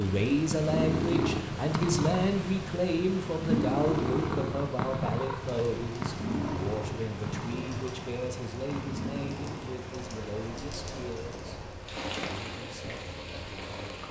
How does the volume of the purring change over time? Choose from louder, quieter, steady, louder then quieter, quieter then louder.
quieter.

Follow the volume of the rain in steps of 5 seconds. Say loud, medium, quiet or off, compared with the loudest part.
off, loud, loud.